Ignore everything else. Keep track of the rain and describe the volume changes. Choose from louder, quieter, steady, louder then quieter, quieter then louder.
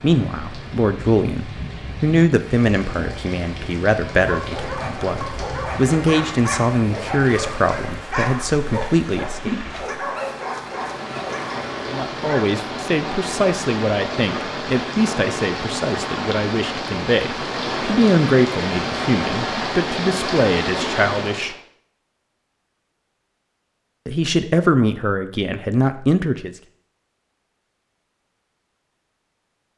louder.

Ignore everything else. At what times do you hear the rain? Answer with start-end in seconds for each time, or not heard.
0.0-21.6.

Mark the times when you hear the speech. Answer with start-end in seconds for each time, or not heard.
0.0-9.5, 11.8-21.6, 24.1-26.6.